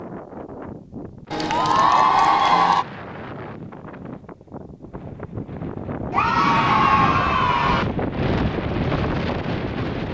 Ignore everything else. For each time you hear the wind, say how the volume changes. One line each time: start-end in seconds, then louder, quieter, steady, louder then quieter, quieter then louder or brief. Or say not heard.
0.0-10.0 louder.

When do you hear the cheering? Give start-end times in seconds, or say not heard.
1.3-2.9, 6.1-7.8.